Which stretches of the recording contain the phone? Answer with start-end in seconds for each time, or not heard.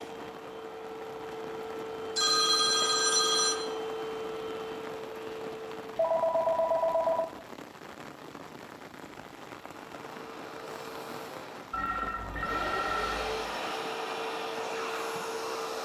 2.1-3.5, 6.0-7.3, 11.7-13.4.